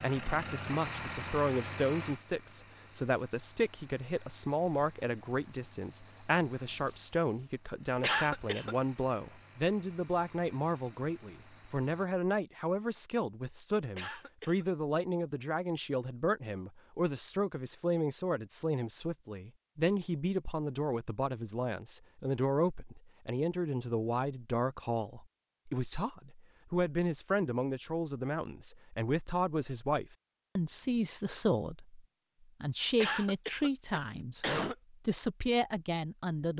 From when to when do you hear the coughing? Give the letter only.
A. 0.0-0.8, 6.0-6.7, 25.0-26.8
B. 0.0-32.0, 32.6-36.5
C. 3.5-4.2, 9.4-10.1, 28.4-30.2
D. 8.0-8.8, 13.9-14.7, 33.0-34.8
D.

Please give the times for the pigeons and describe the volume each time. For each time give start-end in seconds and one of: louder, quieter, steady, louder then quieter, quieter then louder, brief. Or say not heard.
not heard.